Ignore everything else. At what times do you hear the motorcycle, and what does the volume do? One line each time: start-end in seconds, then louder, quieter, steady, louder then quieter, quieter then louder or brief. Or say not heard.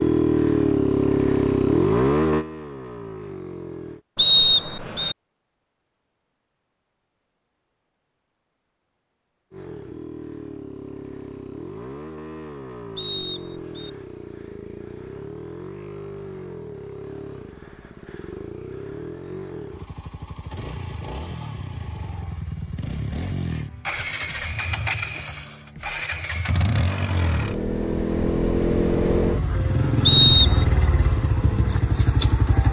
0.0-4.0 quieter
9.5-32.6 louder.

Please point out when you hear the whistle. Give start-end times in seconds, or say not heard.
4.2-5.2, 12.9-13.9, 30.1-30.7.